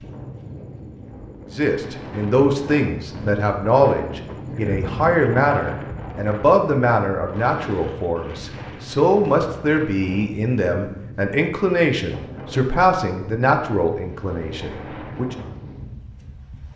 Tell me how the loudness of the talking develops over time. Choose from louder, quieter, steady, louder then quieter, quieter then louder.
steady.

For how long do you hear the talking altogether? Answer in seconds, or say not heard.
14 s.